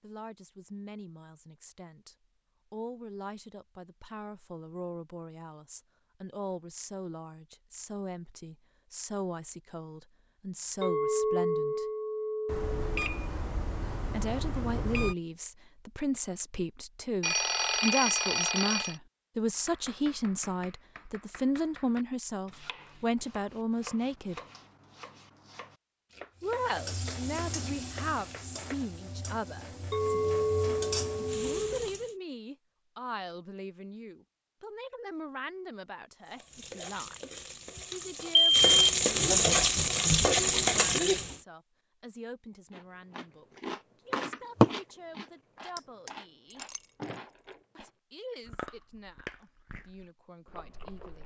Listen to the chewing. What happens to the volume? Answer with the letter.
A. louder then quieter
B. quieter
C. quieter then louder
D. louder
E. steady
B.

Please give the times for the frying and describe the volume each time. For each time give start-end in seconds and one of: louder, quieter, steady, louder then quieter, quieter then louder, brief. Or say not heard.
26.4-32.1 quieter then louder
36.2-41.4 louder.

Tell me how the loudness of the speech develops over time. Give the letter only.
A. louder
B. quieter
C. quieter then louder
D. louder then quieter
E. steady
D.